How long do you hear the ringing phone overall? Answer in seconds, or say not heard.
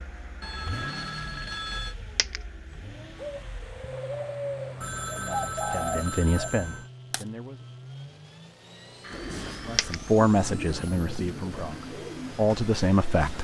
5 s.